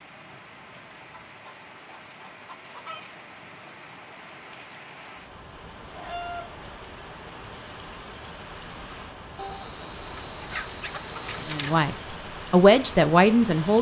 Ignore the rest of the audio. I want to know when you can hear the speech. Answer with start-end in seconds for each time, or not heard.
11.4-13.7.